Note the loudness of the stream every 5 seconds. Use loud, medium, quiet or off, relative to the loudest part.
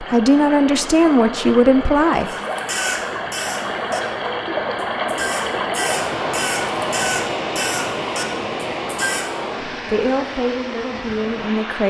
loud, loud, medium.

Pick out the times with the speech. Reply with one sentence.
The speech can be heard from 0.0 to 2.3 s and from 9.8 to 11.8 s.